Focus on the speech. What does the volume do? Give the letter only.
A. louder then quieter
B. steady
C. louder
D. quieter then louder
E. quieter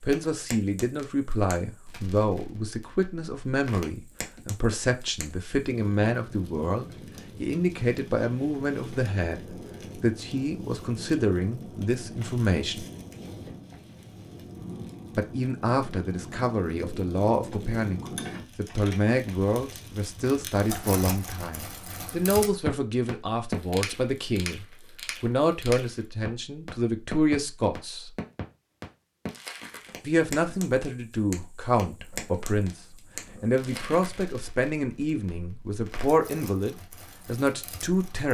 B.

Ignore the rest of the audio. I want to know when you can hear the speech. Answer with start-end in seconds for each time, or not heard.
0.0-12.8, 15.2-28.1, 30.0-38.2.